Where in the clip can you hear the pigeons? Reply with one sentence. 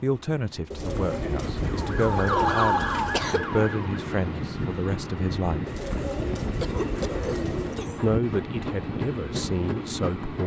You can hear the pigeons from 0.7 to 3.2 s and from 5.7 to 7.9 s.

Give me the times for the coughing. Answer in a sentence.
You can hear the coughing from 2.4 to 3.5 s and from 5.8 to 8.1 s.